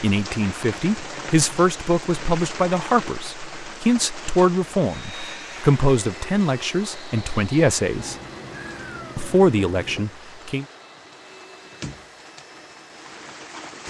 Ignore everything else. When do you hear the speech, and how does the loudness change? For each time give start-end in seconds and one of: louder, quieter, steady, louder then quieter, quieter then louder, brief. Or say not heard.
0.0-8.2 steady
9.2-10.7 brief.